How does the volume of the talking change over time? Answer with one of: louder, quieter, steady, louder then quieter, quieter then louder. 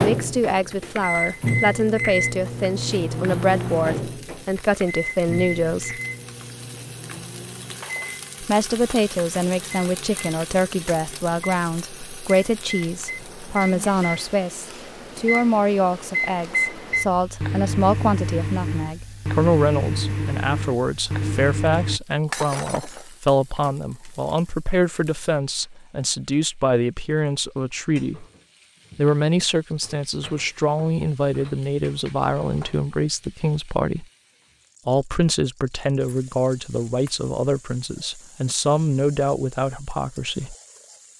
steady.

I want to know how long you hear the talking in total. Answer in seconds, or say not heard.
37 s.